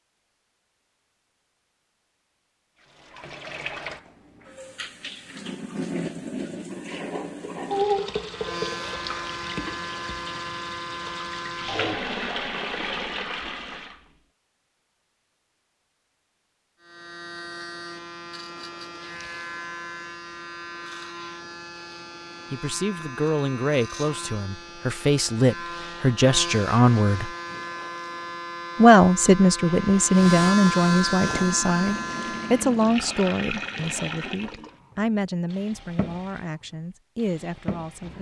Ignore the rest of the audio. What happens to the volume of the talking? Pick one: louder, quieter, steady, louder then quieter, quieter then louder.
louder then quieter.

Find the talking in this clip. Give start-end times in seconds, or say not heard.
22.5-27.3, 28.8-38.1.